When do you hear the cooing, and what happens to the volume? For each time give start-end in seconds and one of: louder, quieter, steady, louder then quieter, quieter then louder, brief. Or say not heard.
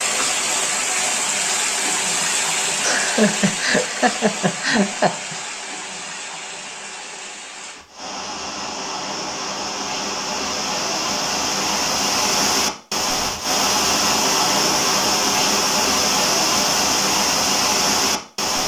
not heard.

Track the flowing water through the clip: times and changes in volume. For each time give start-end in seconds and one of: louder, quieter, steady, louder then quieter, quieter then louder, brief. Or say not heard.
0.0-18.6 quieter then louder.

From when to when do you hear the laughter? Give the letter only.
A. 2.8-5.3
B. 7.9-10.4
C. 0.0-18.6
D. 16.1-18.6
A.